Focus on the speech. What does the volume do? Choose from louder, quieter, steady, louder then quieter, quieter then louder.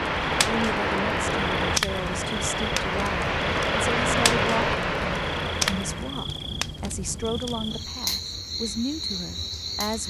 steady.